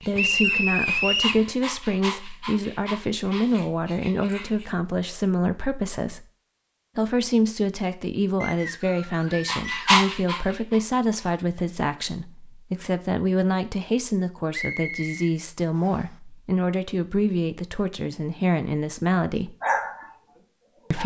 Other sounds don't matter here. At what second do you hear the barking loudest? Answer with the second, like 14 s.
10 s.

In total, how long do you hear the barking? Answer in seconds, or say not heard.
8 s.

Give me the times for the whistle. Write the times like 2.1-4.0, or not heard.
0.1-1.4, 8.4-10.0, 14.5-16.0.